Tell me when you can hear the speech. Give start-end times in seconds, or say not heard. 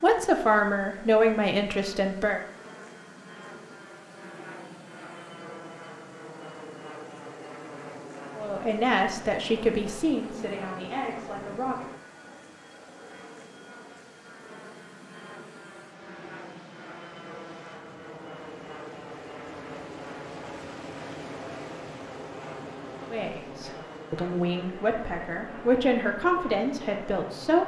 0.0-2.4, 8.3-11.8, 23.1-27.6.